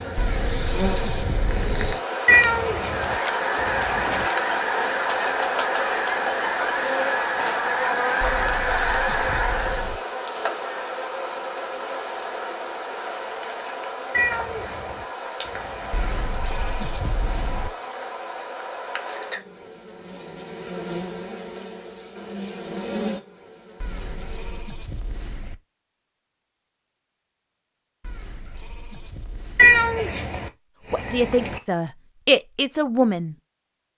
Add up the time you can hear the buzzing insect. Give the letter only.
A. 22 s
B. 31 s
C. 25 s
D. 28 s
C.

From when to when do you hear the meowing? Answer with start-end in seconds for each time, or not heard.
2.2-4.3, 14.1-16.1, 29.6-31.6.